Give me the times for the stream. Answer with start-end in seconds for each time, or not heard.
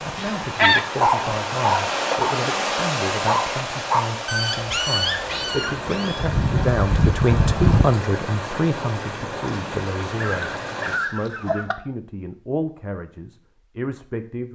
0.0-11.0.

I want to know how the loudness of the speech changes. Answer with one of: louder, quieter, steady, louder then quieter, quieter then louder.
louder then quieter.